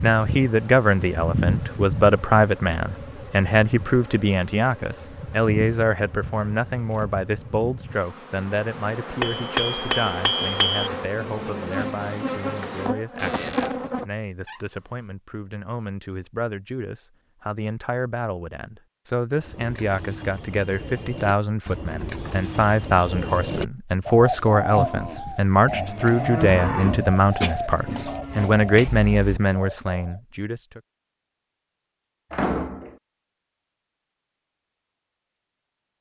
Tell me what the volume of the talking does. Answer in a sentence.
The volume of the talking goes down, then up.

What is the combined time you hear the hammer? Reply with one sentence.
The hammer can be heard for 2 seconds in total.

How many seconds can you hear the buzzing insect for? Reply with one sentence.
The buzzing insect can be heard for 14 seconds in total.